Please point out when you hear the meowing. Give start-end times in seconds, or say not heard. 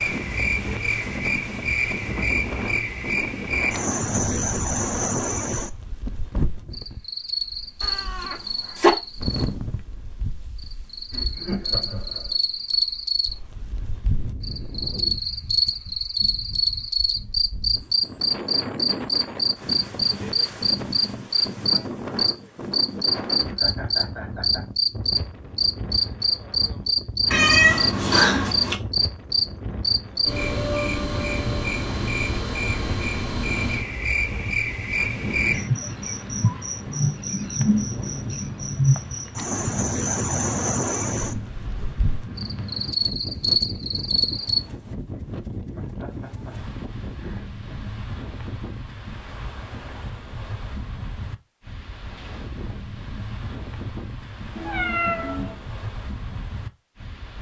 7.8-8.9, 27.3-28.8, 54.5-55.5.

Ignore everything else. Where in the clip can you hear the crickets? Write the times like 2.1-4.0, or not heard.
0.0-44.6.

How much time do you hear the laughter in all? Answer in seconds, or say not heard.
5 s.